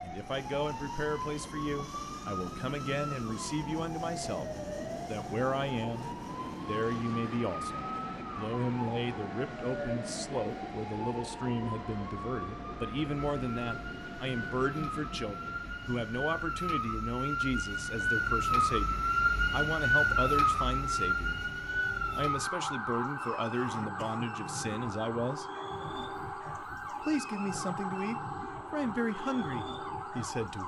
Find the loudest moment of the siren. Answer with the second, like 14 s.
20 s.